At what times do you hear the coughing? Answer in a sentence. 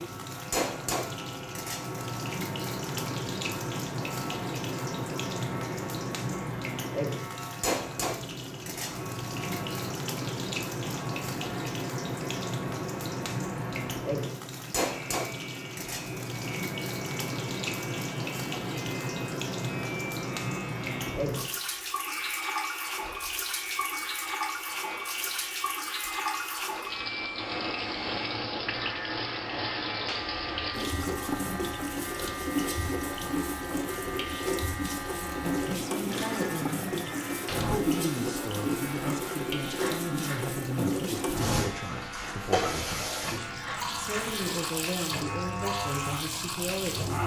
The coughing can't be heard in this clip.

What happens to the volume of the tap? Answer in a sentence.
The loudness of the tap stays about the same.